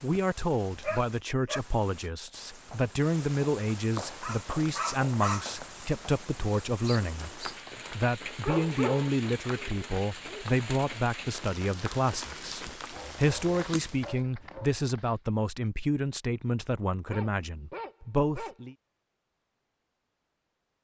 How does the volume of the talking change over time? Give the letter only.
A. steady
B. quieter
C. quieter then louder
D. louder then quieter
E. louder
A.